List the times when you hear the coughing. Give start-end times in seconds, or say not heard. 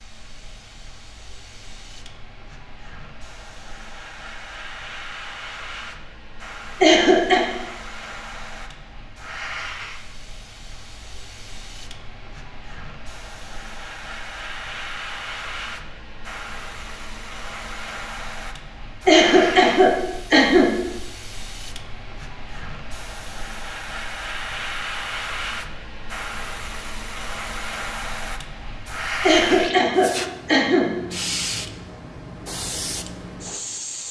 6.8-7.5, 19.1-20.7, 29.2-30.9.